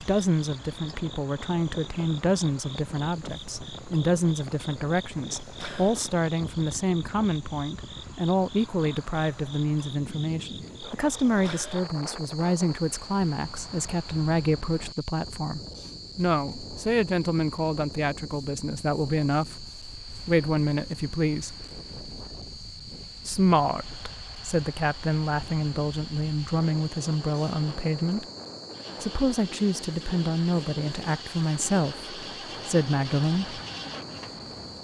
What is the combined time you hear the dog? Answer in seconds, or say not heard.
not heard.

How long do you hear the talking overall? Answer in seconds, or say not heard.
31 s.